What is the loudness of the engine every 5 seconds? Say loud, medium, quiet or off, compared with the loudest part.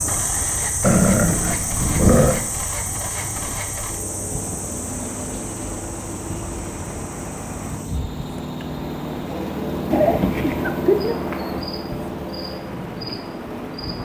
medium, loud, loud.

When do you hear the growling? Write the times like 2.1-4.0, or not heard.
0.8-2.4, 9.9-10.8.